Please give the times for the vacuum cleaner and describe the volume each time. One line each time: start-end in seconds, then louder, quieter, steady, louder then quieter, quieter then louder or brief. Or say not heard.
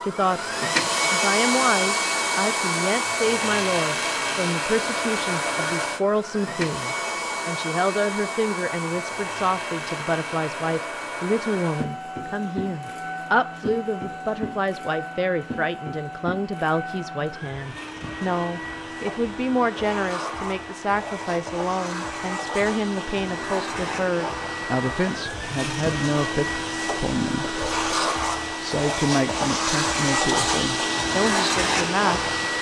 0.0-32.5 quieter then louder.